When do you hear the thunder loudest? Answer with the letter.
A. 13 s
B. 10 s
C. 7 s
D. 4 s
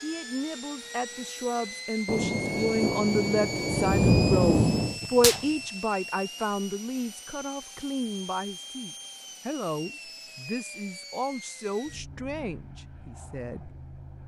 D.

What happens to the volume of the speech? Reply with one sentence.
The volume of the speech goes up, then down.